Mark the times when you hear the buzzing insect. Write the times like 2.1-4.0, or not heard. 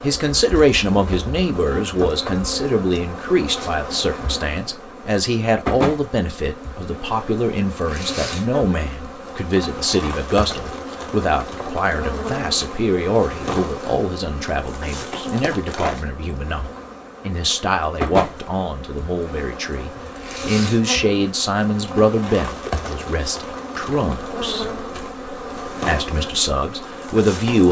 0.0-27.6.